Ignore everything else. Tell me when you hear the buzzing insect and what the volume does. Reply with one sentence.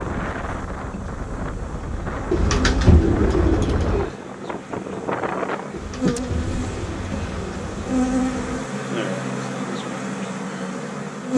The buzzing insect can be heard from 0.0 to 11.3 s, getting louder.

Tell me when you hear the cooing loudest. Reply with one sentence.
The volume of the cooing peaks at 3 seconds.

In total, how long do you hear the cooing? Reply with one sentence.
The cooing can be heard for 5 seconds in total.